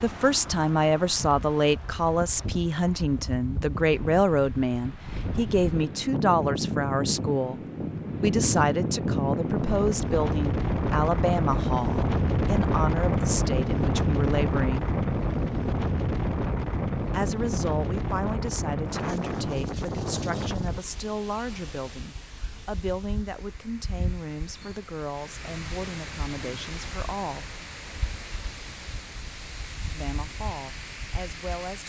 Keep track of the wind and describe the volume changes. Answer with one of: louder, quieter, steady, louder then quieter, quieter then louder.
louder then quieter.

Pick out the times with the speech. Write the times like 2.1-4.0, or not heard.
0.0-7.6, 8.2-14.9, 17.1-27.4, 29.9-31.8.